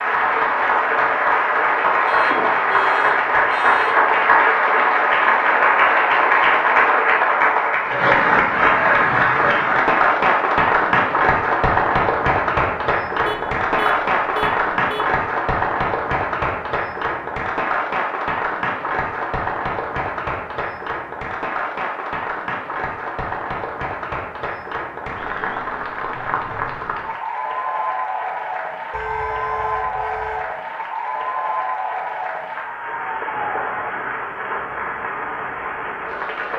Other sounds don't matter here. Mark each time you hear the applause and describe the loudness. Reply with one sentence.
You can hear the applause from 0.0 to 36.5 s, getting quieter.